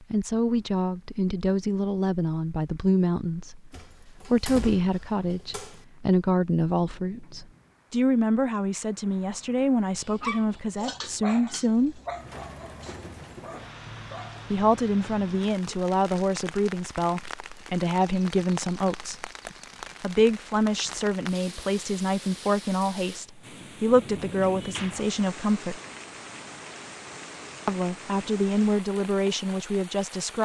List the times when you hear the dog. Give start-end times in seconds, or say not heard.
10.0-15.1.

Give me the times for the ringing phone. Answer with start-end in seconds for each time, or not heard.
not heard.